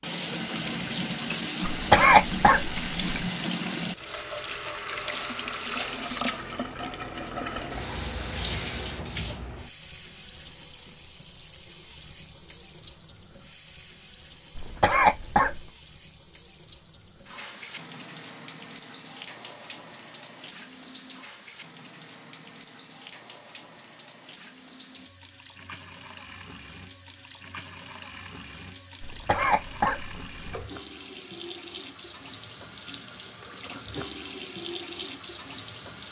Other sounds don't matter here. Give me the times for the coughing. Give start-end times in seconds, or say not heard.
1.6-3.0, 14.6-15.7, 29.0-30.6.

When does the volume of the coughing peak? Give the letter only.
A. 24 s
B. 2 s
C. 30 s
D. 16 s
B.